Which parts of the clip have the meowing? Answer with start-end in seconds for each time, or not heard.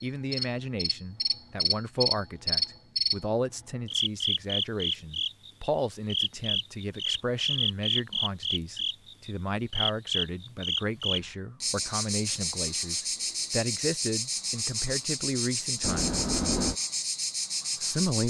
15.8-16.8.